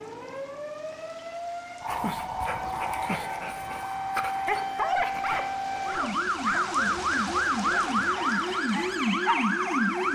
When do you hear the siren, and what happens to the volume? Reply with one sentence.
You can hear the siren from 0.0 to 10.1 s, getting louder.